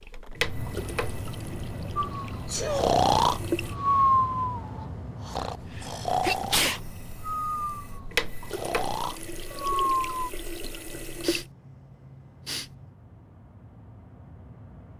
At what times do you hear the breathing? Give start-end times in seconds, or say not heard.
1.9-10.3.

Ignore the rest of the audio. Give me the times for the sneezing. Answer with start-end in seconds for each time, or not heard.
2.5-2.9, 5.4-6.8, 10.9-12.9.